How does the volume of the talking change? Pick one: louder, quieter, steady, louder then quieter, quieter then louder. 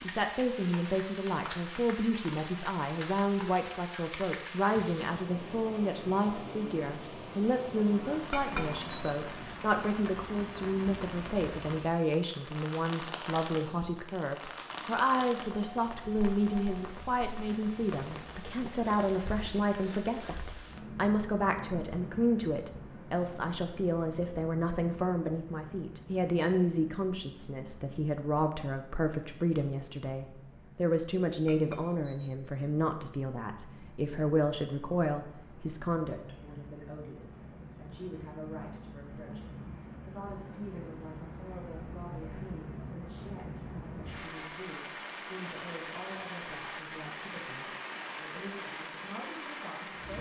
quieter.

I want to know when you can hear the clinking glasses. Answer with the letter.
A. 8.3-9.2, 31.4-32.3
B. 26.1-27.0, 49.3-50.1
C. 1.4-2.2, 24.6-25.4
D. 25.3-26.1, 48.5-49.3
A.